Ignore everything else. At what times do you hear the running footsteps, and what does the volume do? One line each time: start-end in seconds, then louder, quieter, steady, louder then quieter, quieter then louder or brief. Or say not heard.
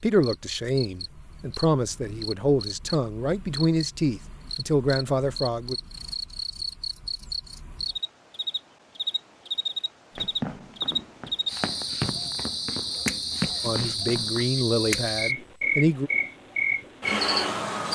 10.2-14.4 louder.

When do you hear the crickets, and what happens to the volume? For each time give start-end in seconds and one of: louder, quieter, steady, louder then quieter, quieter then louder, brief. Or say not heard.
0.0-17.8 louder.